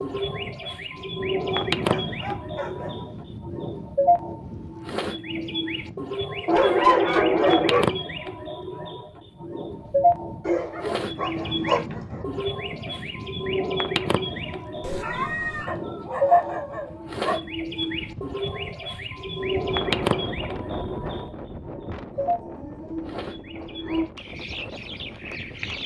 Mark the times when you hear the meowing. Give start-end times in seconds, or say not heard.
14.8-15.7.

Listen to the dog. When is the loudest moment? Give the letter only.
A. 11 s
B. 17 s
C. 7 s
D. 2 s
C.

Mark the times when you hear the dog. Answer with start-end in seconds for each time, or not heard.
1.4-3.0, 6.5-7.8, 10.4-12.2, 15.7-17.9, 22.1-24.1.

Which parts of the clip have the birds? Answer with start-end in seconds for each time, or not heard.
0.0-25.8.